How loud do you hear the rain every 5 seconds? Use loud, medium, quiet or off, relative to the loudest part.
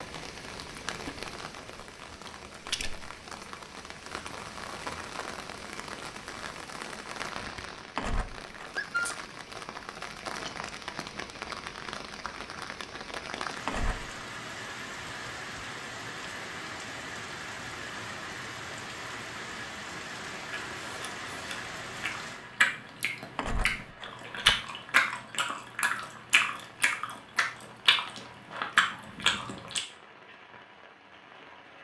loud, loud, loud, loud, loud, quiet, quiet.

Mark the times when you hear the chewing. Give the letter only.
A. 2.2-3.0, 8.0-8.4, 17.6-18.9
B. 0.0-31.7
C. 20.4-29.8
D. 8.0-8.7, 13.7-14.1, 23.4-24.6
C.